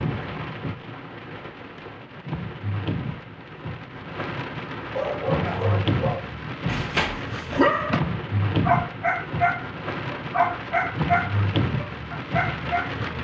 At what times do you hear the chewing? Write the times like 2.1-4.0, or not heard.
not heard.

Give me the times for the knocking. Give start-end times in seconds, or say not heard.
not heard.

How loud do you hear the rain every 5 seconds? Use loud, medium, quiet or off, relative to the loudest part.
medium, loud, loud.